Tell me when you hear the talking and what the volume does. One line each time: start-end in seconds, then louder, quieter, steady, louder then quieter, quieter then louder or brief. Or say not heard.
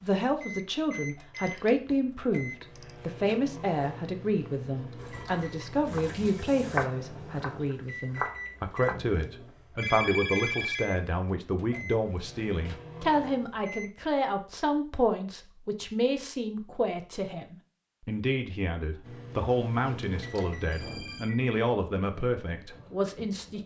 0.0-23.6 steady.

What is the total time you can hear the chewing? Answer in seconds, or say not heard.
not heard.